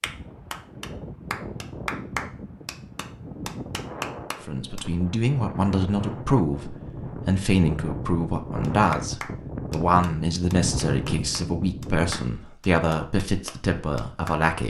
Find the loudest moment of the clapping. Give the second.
2 s.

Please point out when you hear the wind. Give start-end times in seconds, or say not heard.
0.0-12.2.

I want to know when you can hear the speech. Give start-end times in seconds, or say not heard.
4.5-14.6.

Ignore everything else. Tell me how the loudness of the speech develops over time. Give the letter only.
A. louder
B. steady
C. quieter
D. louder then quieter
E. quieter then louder
B.